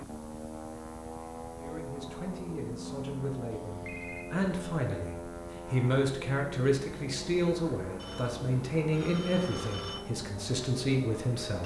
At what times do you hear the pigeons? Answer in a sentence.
You can't hear the pigeons here.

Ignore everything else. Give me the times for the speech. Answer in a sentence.
You can hear the speech from 1.6 to 11.6 s.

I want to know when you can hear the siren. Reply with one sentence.
You can't hear the siren here.